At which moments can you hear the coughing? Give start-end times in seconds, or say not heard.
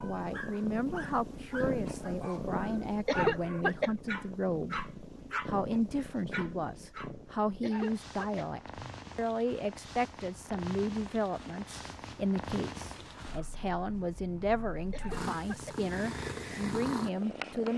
3.0-3.9, 7.6-8.4, 14.9-15.8.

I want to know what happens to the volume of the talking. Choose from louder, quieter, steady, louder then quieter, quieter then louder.
steady.